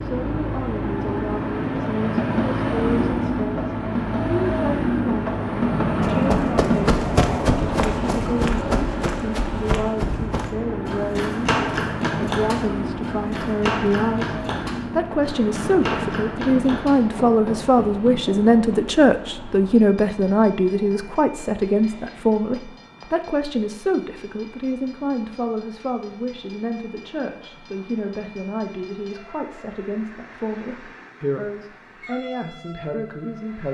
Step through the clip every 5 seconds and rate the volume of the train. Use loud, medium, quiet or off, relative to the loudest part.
loud, loud, medium, medium, quiet, quiet, quiet.